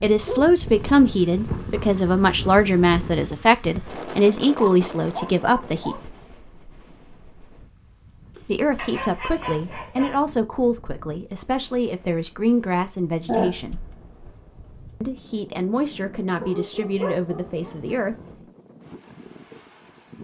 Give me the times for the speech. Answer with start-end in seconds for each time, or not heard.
0.0-6.1, 8.4-13.8, 15.0-18.1.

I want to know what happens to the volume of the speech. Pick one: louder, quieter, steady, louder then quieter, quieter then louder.
quieter.